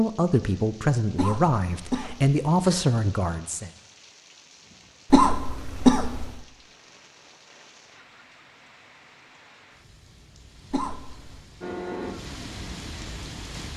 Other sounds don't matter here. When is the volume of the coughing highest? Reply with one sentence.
The loudest moment of the coughing is at 6 seconds.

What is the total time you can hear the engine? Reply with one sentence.
You can hear the engine for 2 seconds altogether.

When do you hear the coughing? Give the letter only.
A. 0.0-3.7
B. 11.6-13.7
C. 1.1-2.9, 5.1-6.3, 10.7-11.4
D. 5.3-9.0
C.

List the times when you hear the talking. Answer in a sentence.
The talking can be heard from 0.0 to 3.7 s.